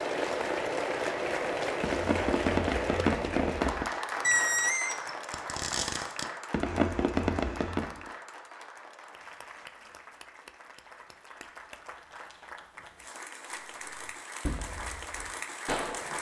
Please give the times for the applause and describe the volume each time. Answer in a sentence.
You can hear the applause from 0.0 to 16.1 s, getting quieter then louder.